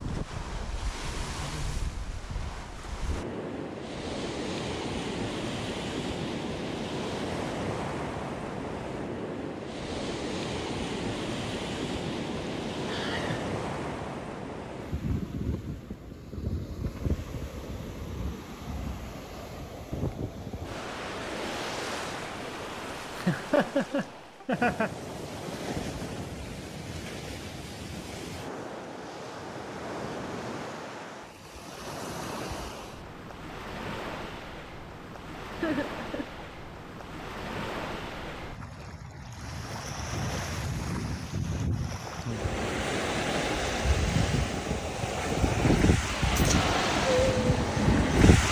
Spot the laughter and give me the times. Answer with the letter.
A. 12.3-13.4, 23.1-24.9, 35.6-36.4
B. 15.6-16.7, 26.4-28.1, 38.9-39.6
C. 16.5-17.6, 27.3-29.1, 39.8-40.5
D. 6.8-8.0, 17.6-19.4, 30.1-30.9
A.